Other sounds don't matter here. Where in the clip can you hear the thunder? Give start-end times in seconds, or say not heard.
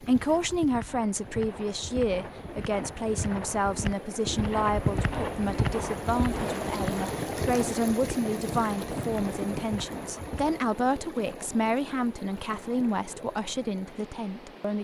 6.3-9.7.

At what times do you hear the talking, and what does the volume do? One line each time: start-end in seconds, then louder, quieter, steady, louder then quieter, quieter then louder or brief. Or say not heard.
0.0-14.8 steady.